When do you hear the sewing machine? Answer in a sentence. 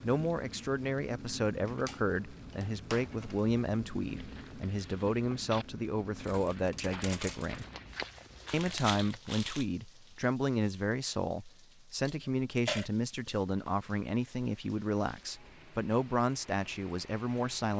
You can't hear the sewing machine here.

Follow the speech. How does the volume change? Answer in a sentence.
The volume of the speech stays about the same.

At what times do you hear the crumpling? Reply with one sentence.
The crumpling can be heard from 8.4 to 9.7 s.